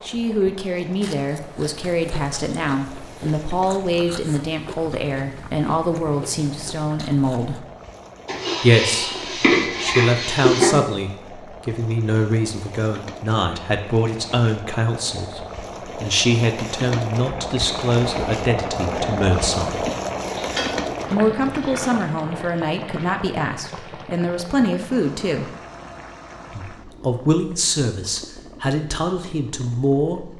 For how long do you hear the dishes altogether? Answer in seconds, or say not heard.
4 s.